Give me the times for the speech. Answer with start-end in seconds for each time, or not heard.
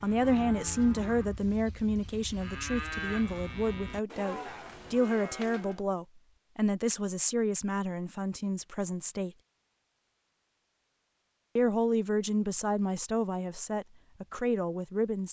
0.0-9.3, 11.6-15.2.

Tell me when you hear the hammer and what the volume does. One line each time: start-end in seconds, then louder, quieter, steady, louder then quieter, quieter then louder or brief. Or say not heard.
not heard.